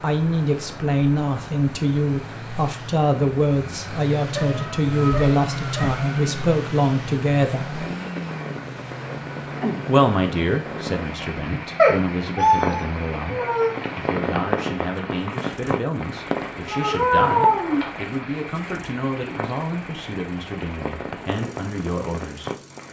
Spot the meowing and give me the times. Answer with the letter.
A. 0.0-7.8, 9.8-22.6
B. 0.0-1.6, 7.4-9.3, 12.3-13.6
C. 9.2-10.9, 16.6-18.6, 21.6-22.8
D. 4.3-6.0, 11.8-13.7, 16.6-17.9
D.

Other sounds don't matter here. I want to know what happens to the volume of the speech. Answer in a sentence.
The loudness of the speech goes down.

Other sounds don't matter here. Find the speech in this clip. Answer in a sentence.
The speech can be heard from 0.0 to 7.8 s and from 9.8 to 22.6 s.